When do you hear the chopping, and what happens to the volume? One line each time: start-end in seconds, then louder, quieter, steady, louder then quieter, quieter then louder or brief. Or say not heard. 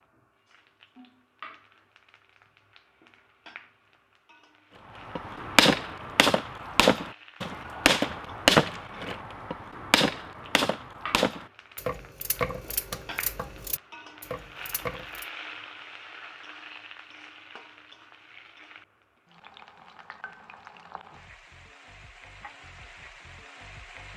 5.0-15.2 quieter.